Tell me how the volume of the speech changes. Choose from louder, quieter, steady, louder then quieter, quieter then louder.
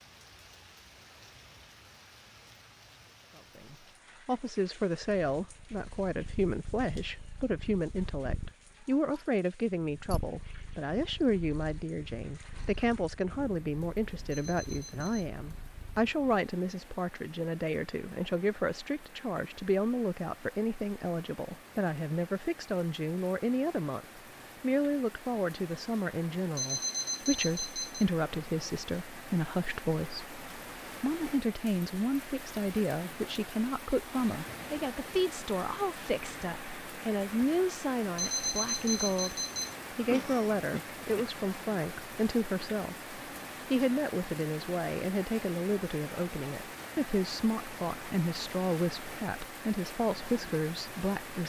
steady.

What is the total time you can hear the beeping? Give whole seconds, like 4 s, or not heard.
4 s.